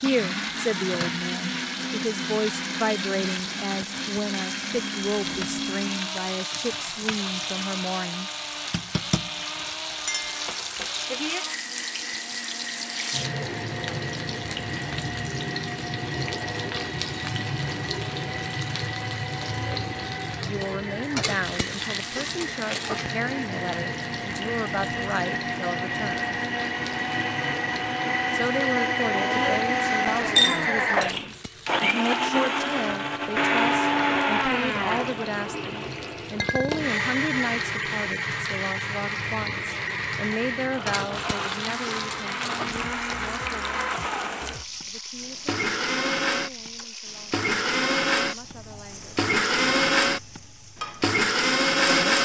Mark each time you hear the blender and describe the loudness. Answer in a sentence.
The blender can be heard from 0.0 to 52.2 s, getting louder.